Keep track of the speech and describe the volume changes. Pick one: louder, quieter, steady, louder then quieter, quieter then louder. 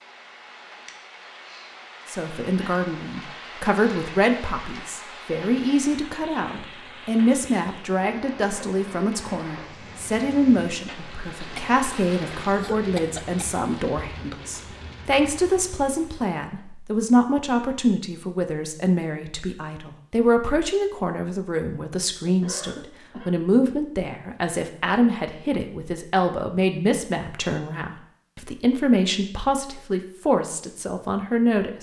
steady.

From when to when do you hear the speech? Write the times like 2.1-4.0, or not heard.
2.0-31.7.